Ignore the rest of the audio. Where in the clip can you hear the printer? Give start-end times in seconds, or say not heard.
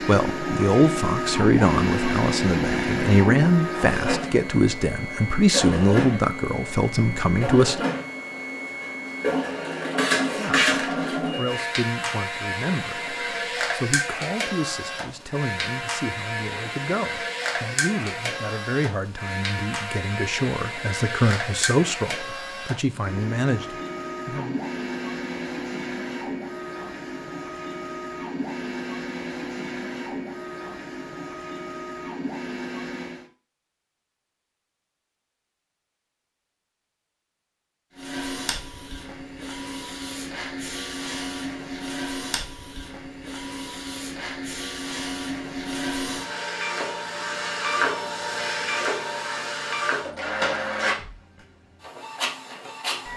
0.0-33.3, 38.0-53.1.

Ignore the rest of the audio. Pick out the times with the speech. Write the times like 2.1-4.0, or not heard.
0.1-7.9, 10.2-24.6.